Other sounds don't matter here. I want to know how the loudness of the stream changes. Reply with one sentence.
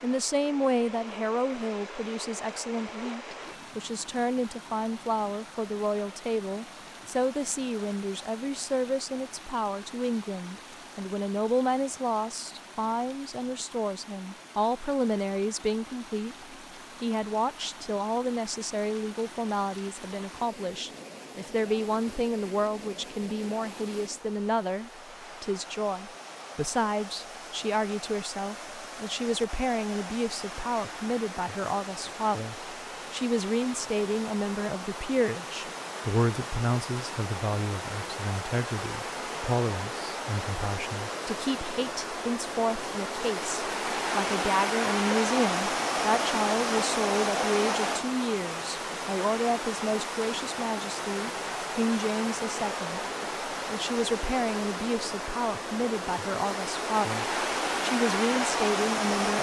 The loudness of the stream goes up.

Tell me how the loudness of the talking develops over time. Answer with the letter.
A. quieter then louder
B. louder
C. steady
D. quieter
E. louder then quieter
C.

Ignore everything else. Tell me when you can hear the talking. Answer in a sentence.
You can hear the talking from 0.0 to 59.3 s.